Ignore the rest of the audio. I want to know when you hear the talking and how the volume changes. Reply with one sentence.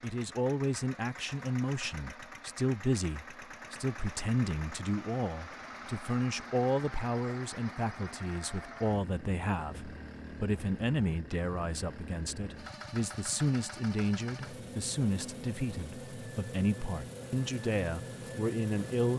You can hear the talking from 0.0 to 19.1 s, at a steady volume.